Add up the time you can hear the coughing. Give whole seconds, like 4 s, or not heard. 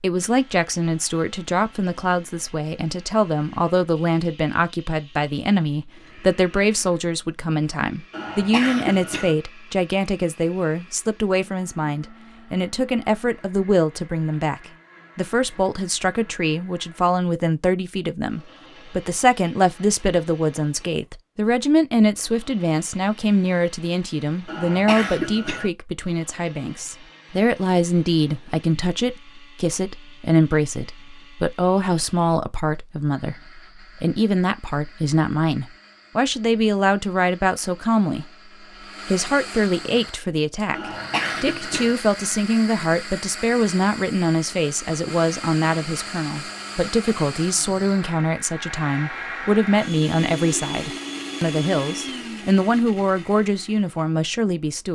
4 s.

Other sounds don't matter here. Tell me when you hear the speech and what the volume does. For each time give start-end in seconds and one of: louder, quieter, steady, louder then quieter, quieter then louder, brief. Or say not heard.
0.0-38.3 steady
39.0-54.9 steady.